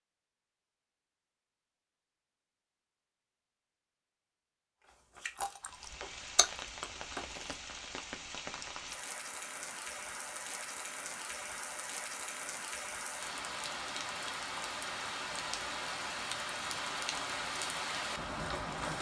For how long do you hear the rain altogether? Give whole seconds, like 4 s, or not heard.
13 s.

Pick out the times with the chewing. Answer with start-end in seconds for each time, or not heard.
4.8-7.5.